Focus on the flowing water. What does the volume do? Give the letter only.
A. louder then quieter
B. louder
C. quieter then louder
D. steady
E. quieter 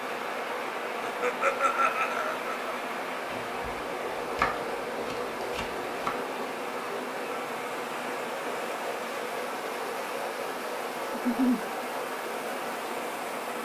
D.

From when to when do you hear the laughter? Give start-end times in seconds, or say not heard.
1.0-2.8, 11.1-11.6.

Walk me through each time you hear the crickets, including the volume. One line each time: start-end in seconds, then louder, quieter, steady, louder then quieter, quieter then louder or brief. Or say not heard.
not heard.